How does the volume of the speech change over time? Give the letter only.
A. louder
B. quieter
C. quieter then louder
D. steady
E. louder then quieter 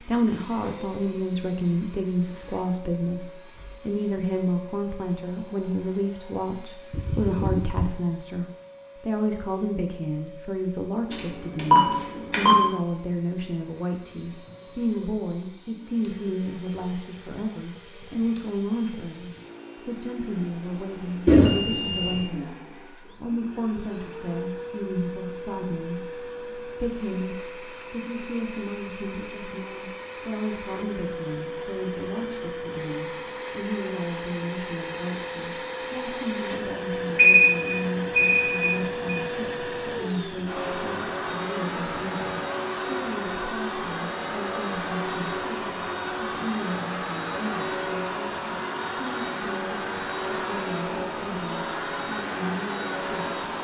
B.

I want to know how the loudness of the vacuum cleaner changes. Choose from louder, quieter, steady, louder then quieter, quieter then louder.
louder.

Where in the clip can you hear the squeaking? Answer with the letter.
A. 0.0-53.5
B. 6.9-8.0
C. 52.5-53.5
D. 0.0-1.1
B.